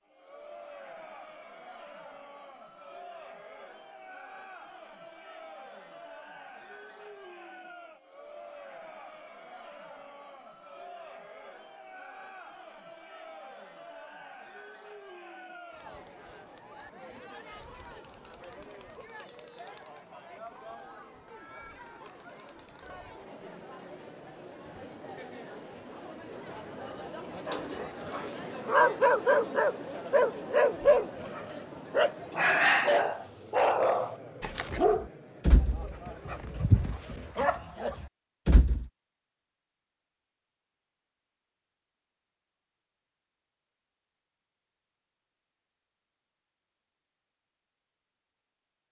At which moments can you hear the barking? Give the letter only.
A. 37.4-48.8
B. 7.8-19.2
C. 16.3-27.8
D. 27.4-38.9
D.